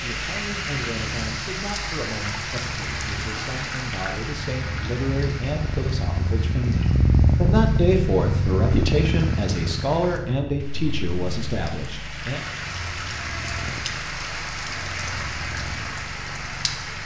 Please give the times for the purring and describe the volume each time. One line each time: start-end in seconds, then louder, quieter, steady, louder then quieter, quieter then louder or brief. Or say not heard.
0.1-17.0 louder then quieter.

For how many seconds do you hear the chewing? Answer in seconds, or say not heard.
not heard.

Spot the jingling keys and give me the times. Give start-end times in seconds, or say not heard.
not heard.